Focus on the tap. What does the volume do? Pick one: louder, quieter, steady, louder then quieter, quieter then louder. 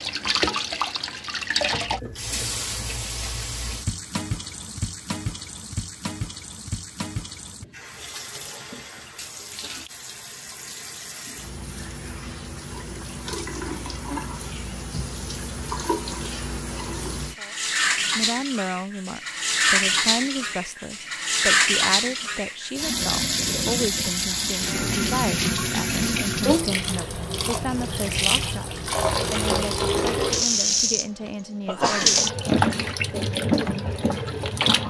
quieter then louder.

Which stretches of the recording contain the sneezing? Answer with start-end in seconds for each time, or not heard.
31.2-32.2.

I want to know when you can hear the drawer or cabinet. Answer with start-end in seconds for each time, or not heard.
not heard.